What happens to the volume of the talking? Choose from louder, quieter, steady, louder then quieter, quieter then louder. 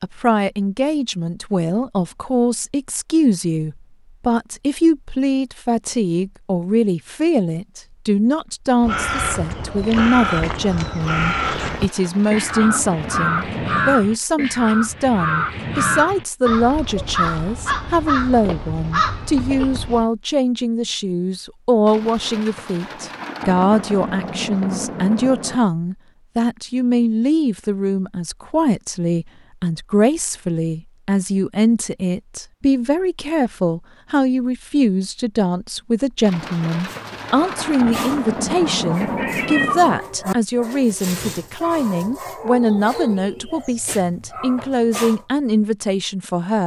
steady.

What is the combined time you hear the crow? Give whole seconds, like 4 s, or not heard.
11 s.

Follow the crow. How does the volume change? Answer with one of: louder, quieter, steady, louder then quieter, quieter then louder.
steady.